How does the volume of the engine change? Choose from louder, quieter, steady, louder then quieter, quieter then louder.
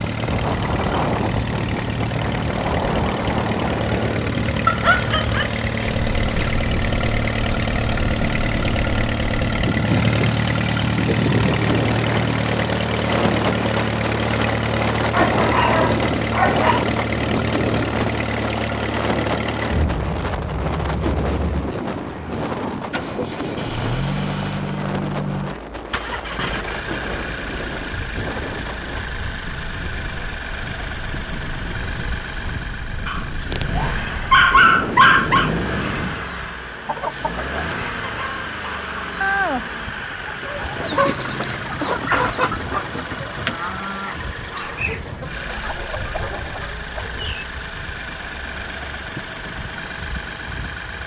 quieter.